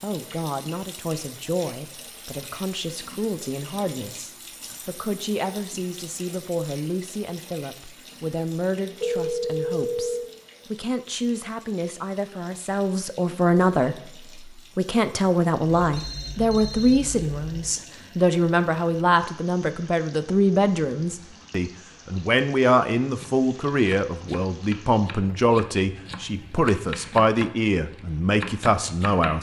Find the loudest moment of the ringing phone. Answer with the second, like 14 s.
9 s.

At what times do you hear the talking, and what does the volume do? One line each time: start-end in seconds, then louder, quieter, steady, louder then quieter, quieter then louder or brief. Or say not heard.
0.0-29.3 louder.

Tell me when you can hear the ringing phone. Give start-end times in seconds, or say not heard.
9.0-10.3, 15.8-17.7.